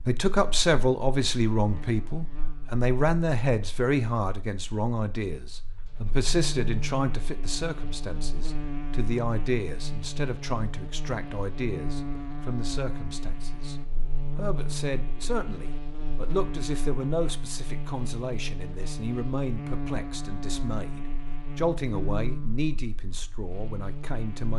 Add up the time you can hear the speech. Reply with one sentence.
The speech can be heard for 24 seconds in total.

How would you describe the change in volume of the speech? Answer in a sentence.
The volume of the speech goes down.